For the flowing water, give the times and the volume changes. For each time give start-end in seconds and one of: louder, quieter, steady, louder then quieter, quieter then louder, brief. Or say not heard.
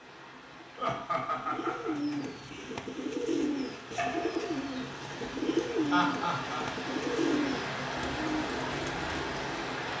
0.0-9.9 louder.